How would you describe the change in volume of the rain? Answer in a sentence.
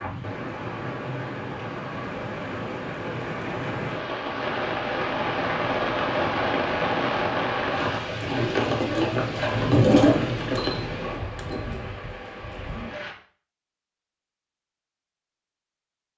The loudness of the rain goes up, then down.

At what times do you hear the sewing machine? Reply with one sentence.
You can hear the sewing machine from 8.1 to 11.7 s.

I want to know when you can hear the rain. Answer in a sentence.
The rain can be heard from 0.0 to 13.2 s.